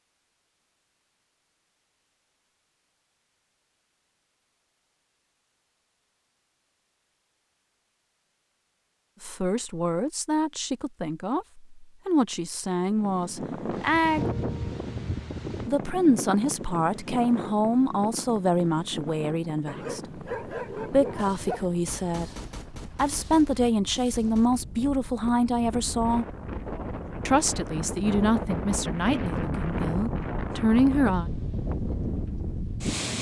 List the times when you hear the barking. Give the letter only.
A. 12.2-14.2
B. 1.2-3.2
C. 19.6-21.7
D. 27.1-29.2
C.